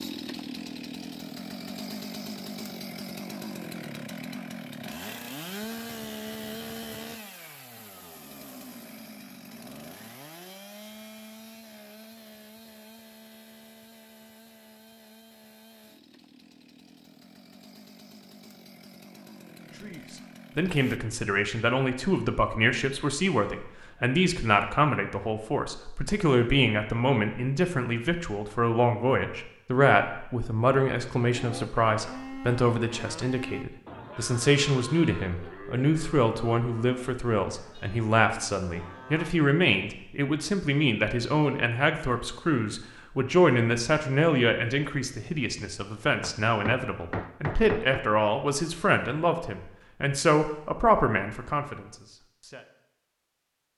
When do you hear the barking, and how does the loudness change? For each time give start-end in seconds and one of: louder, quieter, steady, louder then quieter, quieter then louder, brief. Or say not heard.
not heard.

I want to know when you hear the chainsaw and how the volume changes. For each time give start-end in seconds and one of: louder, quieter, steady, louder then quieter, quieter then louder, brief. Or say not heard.
0.0-21.0 quieter.